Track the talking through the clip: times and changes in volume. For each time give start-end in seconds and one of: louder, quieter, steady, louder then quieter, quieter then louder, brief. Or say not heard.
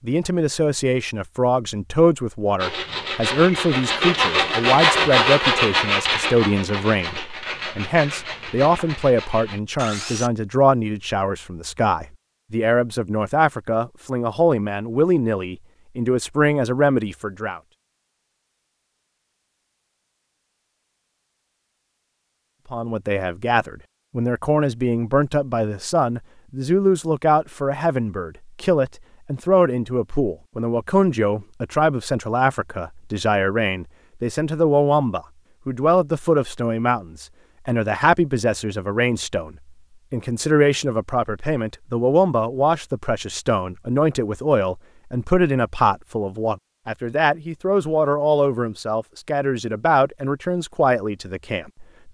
0.0-17.6 steady
22.7-52.0 steady.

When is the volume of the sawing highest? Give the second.
5 s.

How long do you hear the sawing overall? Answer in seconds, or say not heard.
8 s.